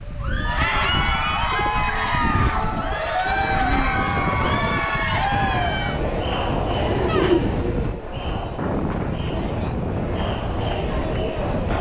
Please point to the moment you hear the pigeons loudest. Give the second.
7 s.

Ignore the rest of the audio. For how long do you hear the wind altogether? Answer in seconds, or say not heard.
12 s.